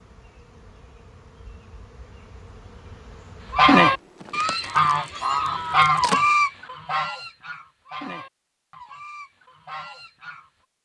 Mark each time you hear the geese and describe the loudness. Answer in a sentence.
You can hear the geese from 3.5 to 10.5 s, getting quieter.